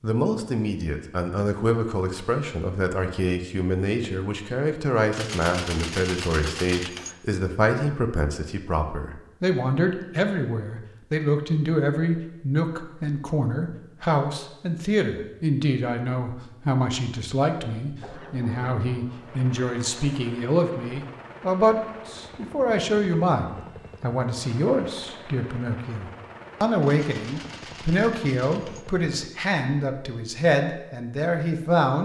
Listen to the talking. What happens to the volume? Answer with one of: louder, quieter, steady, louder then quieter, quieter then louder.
steady.